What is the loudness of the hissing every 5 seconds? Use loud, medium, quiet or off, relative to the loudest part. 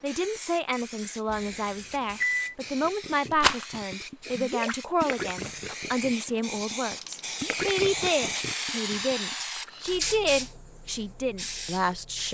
medium, loud, loud.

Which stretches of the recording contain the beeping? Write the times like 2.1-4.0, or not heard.
1.2-2.5.